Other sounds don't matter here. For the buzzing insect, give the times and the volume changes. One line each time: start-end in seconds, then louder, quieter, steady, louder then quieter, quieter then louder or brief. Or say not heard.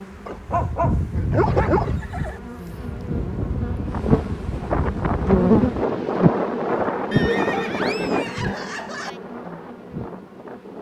0.0-10.7 louder then quieter.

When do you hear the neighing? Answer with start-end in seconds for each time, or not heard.
1.4-2.4, 7.1-9.1.